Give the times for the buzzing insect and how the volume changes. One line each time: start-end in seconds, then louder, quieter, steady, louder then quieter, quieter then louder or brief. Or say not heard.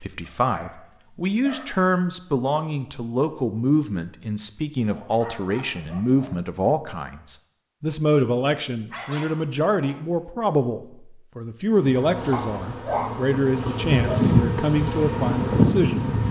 11.7-16.2 louder.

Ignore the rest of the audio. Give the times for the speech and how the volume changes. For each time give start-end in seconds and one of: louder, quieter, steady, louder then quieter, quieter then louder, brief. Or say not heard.
0.0-16.1 steady.